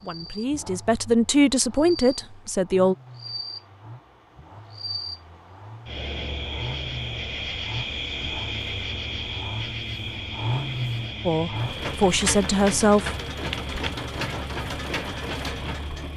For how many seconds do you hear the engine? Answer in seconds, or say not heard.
16 s.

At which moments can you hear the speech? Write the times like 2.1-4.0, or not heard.
0.0-3.0, 11.2-13.2.